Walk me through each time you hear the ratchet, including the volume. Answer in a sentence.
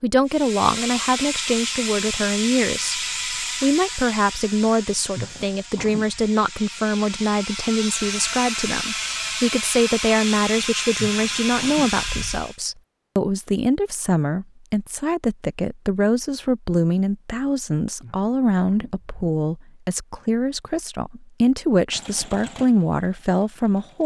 The ratchet can be heard from 0.2 to 12.6 s, getting quieter then louder.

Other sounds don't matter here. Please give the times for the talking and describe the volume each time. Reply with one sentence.
The talking can be heard from 0.0 to 24.0 s, at a steady volume.